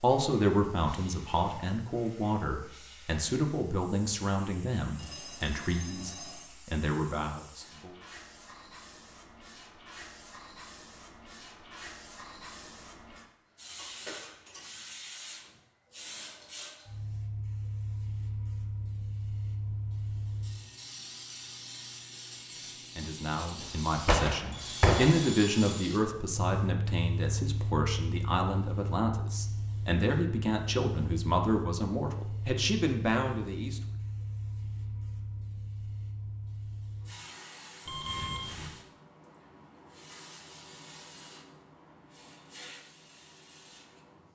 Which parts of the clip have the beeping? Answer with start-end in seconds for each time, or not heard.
5.0-6.5, 24.5-25.9, 37.9-38.8.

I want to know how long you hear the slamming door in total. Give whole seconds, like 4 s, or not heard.
2 s.